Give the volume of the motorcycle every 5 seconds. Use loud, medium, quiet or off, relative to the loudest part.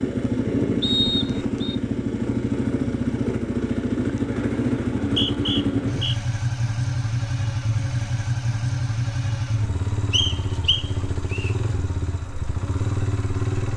loud, loud, medium.